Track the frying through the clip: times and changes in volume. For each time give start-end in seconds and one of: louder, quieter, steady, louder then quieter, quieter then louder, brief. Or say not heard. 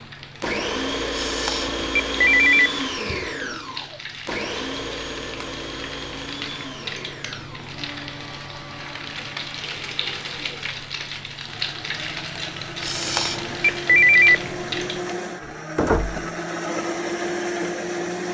0.0-15.2 louder.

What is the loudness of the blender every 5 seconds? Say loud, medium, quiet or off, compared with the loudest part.
loud, medium, medium, loud.